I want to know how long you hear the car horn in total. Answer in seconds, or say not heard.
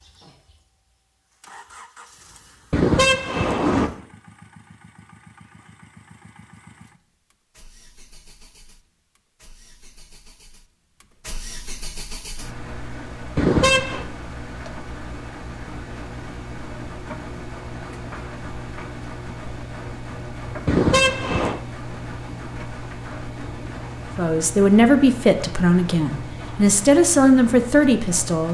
3 s.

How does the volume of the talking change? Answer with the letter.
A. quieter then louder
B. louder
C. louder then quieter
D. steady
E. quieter
A.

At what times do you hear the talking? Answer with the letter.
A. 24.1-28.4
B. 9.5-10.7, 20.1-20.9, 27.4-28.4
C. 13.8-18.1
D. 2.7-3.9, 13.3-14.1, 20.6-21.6
A.